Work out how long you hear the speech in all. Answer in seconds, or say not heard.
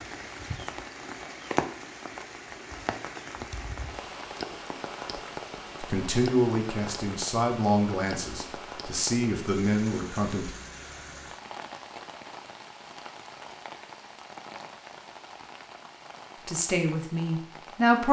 6 s.